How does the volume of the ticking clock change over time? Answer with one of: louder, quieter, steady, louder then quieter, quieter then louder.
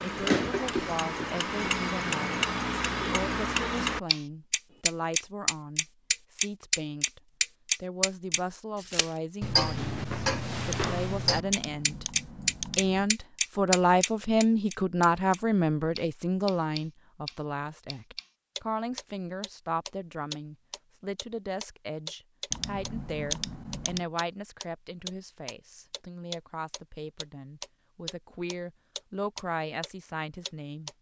quieter.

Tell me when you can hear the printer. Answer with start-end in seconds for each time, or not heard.
not heard.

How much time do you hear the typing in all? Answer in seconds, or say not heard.
4 s.